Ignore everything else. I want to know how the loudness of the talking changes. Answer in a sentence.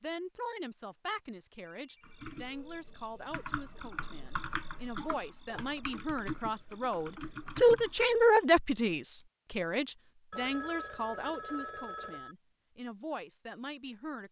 The loudness of the talking goes up, then down.